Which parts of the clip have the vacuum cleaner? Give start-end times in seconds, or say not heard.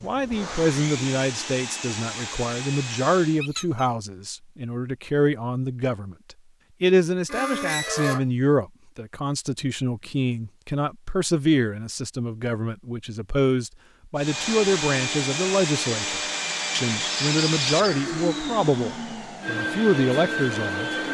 0.0-3.5, 14.2-21.1.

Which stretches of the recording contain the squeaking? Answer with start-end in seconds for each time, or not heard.
3.4-3.9, 7.2-8.2, 17.0-18.0.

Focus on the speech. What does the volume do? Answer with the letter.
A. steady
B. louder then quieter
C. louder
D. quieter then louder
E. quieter
A.